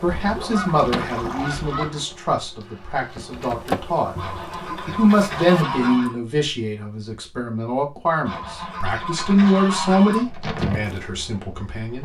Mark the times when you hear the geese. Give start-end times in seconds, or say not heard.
0.1-2.0, 4.2-6.2, 8.2-10.2.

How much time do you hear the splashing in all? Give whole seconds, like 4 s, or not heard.
not heard.